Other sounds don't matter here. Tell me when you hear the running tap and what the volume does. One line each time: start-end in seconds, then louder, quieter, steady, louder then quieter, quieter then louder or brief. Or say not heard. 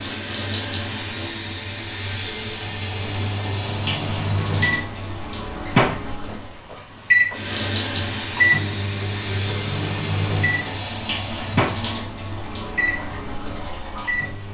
0.0-14.5 steady.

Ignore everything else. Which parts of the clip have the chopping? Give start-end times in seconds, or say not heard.
not heard.